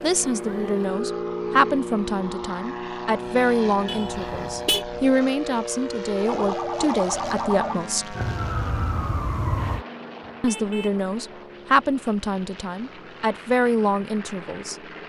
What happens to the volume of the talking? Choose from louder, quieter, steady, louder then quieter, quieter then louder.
steady.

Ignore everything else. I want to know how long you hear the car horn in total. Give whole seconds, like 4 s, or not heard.
2 s.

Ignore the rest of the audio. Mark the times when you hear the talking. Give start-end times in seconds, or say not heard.
0.0-8.2, 10.4-14.8.